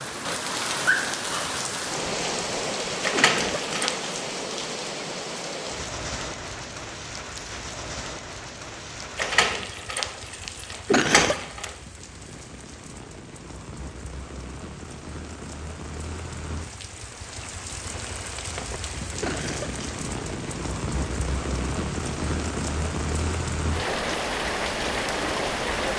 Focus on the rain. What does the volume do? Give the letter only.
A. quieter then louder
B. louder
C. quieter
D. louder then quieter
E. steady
A.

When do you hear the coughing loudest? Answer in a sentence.
The loudest moment of the coughing is at 11 seconds.